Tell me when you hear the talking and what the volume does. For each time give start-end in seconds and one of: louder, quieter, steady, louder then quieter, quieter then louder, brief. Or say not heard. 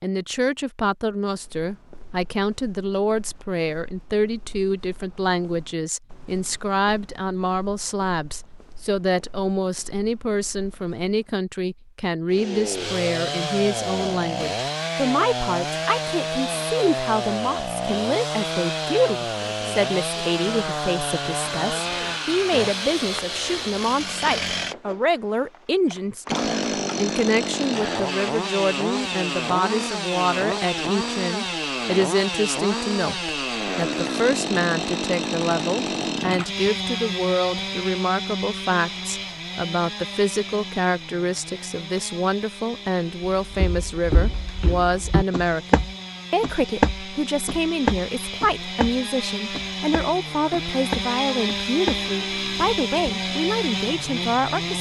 0.0-54.7 steady.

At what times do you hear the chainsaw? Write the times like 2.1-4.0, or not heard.
12.3-54.7.